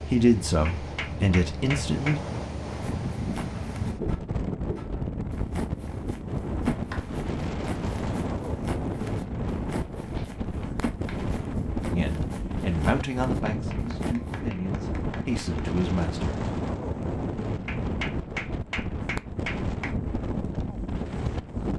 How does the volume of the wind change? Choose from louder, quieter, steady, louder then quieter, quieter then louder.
steady.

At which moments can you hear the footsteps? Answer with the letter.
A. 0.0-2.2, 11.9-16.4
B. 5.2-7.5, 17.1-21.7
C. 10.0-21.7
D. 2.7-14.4
D.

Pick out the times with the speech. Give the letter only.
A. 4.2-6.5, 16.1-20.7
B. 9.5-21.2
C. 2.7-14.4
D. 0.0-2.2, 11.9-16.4
D.